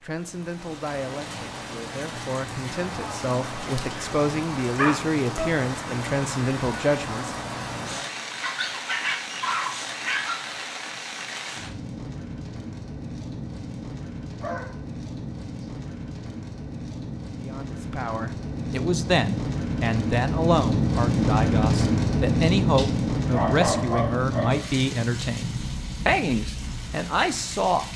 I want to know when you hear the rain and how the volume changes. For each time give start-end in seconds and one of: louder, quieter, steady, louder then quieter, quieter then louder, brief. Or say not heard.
0.1-27.9 louder.